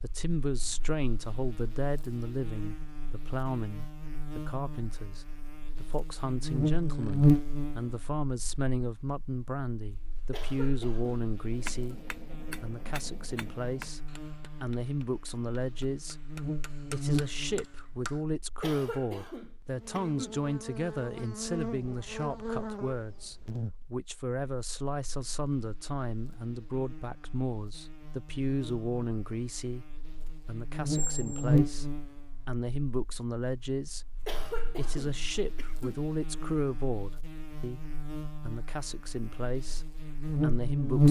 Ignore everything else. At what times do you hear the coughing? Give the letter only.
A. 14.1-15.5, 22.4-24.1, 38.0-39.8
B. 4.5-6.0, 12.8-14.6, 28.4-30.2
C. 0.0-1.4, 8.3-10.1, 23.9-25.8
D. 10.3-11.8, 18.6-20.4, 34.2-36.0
D.